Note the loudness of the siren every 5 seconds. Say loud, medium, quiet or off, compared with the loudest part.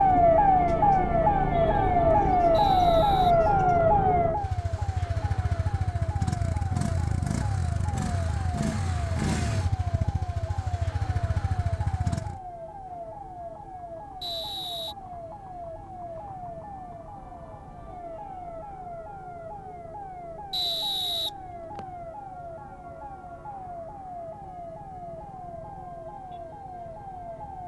loud, quiet, quiet, quiet, quiet, quiet.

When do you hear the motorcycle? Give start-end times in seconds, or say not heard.
0.0-12.4.